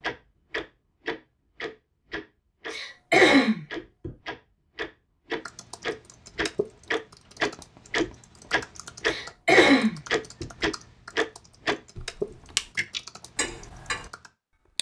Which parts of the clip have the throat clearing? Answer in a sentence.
You can hear the throat clearing from 2.7 to 4.1 s and from 9.1 to 10.4 s.